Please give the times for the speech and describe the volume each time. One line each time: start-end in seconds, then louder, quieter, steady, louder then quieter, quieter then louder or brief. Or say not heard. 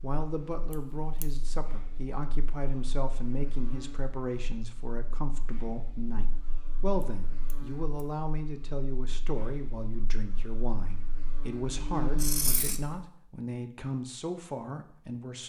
0.0-15.4 steady.